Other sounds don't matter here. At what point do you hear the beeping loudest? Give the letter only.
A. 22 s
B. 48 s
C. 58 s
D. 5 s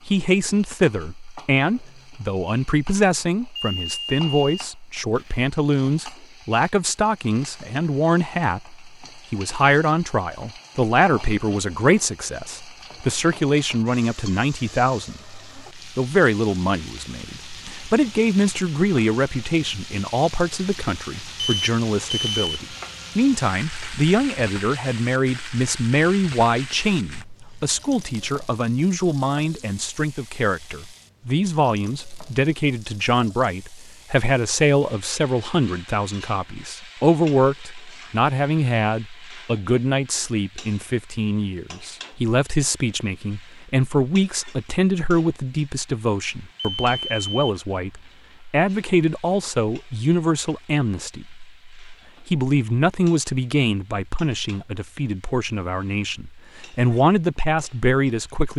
A.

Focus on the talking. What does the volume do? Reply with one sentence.
The volume of the talking stays about the same.